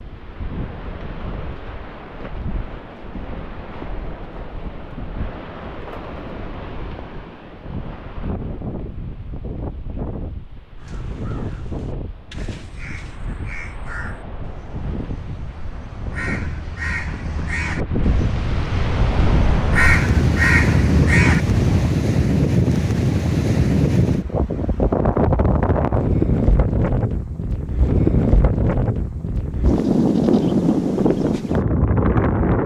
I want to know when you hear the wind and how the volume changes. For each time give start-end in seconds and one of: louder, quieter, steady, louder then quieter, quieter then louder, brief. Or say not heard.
0.0-32.6 louder.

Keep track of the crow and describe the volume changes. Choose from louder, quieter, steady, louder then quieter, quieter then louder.
louder.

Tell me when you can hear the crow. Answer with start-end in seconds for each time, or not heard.
10.8-21.9.